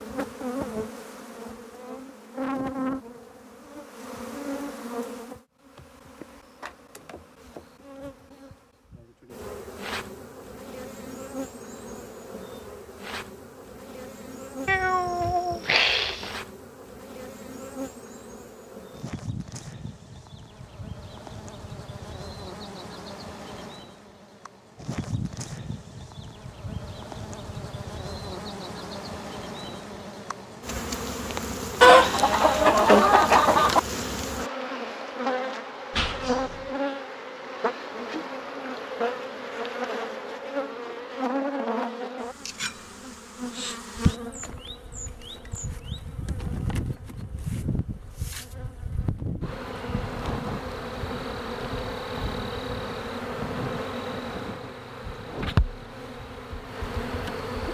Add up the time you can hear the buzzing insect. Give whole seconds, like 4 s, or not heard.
58 s.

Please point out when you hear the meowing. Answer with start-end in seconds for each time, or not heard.
14.7-16.3, 35.9-36.8.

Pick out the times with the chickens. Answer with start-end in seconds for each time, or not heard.
31.8-33.8.